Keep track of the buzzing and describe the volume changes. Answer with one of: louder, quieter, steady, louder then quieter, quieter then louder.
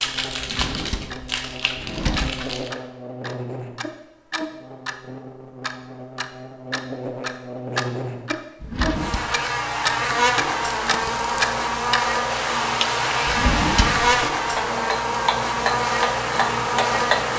louder.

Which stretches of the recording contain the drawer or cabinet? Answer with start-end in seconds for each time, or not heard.
0.4-2.3, 8.6-9.2, 13.2-14.2.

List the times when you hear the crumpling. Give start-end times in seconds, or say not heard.
0.0-2.7, 10.8-11.6.